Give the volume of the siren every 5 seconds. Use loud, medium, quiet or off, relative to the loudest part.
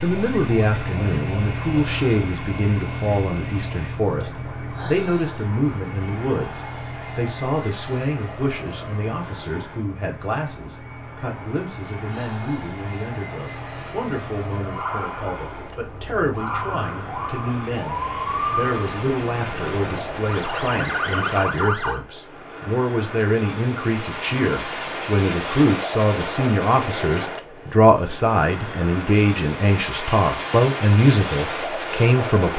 loud, medium, medium, loud, loud, off, off.